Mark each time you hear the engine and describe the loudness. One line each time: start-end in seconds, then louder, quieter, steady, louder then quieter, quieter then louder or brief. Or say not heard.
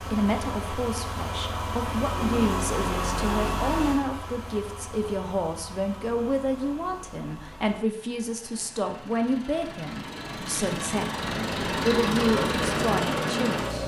0.0-13.8 quieter then louder.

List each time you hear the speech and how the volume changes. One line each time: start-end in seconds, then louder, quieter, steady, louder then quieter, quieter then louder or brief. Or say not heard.
0.0-13.8 steady.